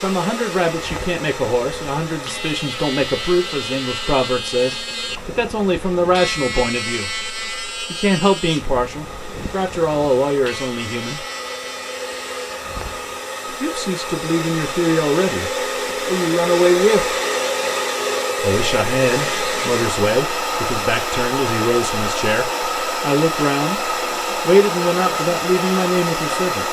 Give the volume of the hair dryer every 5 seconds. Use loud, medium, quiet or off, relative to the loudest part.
medium, quiet, medium, loud, loud, loud.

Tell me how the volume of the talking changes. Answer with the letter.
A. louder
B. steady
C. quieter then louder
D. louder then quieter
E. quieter
B.